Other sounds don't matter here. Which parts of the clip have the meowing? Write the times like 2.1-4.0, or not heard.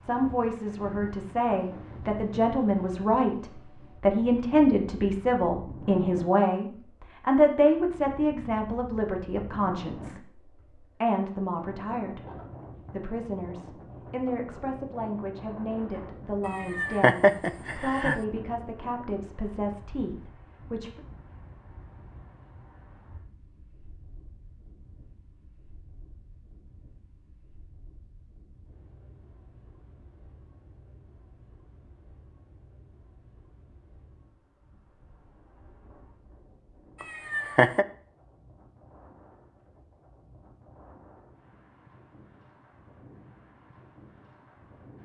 16.4-18.2, 37.0-37.9.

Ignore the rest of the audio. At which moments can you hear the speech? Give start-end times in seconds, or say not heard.
0.0-12.2, 12.9-21.0.